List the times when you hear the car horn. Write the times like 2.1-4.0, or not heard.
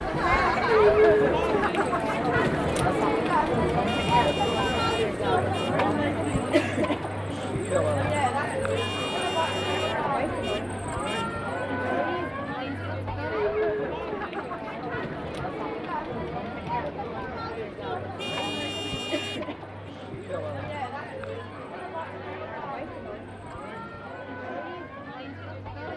3.9-5.8, 8.8-11.3, 18.1-19.9.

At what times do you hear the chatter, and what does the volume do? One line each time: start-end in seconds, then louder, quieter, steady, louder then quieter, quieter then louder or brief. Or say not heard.
0.0-25.9 quieter.